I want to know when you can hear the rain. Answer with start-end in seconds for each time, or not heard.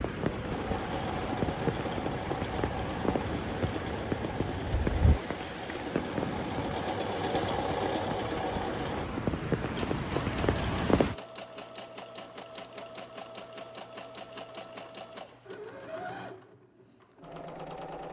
0.0-11.2.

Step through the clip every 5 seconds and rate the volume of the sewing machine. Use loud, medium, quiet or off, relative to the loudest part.
loud, loud, medium, medium.